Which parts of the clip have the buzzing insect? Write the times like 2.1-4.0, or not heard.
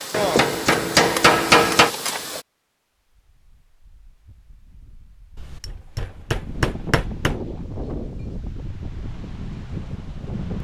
0.0-2.5.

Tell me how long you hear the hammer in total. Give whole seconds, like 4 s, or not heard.
4 s.